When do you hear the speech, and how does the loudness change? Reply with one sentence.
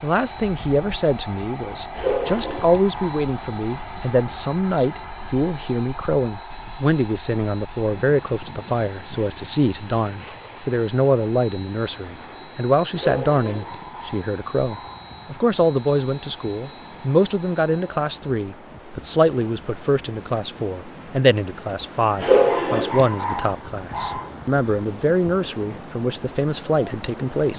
The speech can be heard from 0.0 to 27.5 s, at a steady volume.